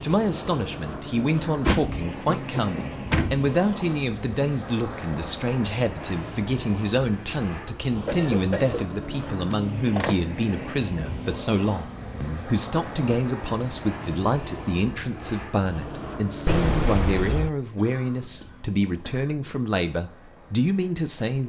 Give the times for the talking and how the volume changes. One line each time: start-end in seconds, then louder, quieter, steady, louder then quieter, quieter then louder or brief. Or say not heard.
0.0-21.4 steady.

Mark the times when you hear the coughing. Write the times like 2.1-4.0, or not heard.
2.2-3.0, 8.1-8.8, 17.8-19.4.